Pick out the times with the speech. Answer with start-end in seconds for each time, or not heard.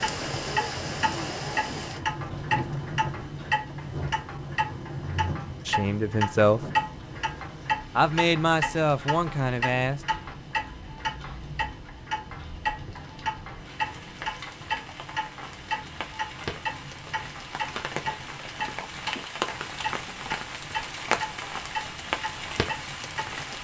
5.7-6.6, 8.0-10.0.